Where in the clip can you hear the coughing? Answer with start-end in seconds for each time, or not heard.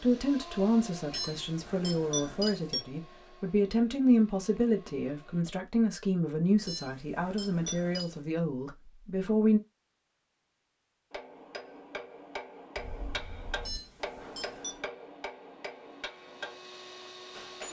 not heard.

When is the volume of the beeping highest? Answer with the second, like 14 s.
2 s.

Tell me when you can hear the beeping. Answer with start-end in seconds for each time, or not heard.
1.1-2.9, 6.7-8.2, 13.6-14.8.